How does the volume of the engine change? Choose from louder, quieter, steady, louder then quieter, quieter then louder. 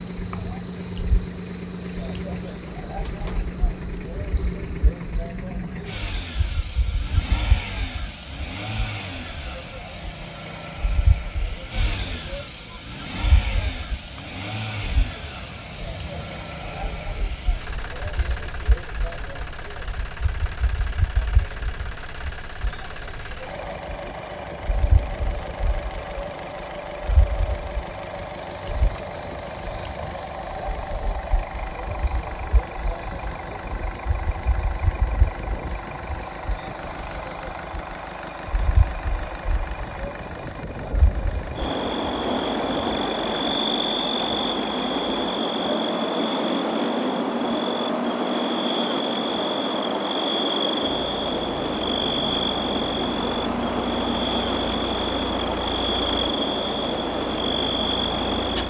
steady.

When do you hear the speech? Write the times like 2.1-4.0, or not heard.
not heard.